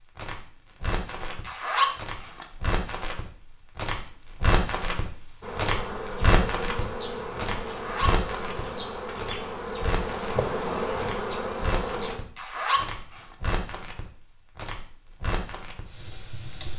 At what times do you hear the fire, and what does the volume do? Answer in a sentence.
You can hear the fire from 0.0 to 16.7 s, getting louder then quieter.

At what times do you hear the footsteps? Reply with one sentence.
You can't hear the footsteps here.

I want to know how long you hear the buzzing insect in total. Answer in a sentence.
You can hear the buzzing insect for 7 seconds altogether.